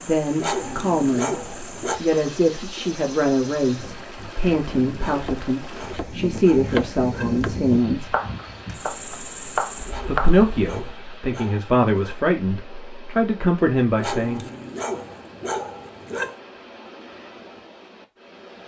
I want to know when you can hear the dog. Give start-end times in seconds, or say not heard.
0.3-2.0, 5.0-7.5, 9.8-12.2, 13.9-16.4.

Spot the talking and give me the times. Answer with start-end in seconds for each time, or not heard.
0.0-8.1, 10.1-14.4.